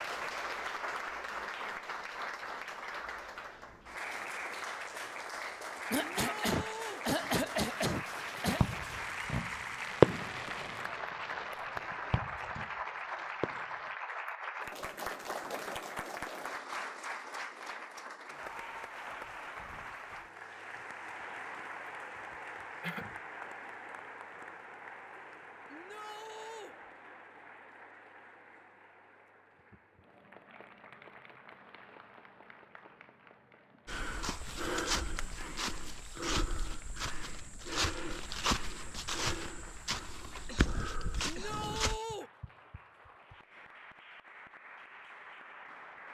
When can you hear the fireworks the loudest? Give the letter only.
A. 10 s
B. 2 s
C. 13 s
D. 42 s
A.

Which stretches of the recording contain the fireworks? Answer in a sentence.
The fireworks can be heard from 7.2 to 13.9 s.